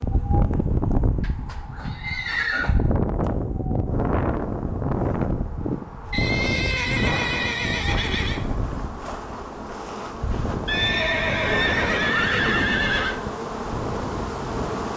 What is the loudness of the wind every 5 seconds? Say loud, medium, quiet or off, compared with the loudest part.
loud, loud, medium.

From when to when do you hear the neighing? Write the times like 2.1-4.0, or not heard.
1.2-2.8, 6.1-8.4, 10.7-13.2.